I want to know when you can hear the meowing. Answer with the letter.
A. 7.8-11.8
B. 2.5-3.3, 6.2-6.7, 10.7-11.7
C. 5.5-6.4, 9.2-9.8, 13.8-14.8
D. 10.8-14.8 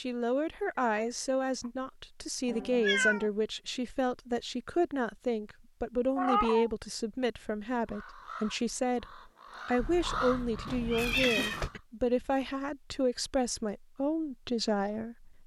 B.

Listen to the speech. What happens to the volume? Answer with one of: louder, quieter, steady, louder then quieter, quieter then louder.
steady.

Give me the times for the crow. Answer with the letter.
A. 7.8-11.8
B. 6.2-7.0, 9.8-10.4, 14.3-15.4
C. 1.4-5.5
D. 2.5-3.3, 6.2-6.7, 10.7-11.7
A.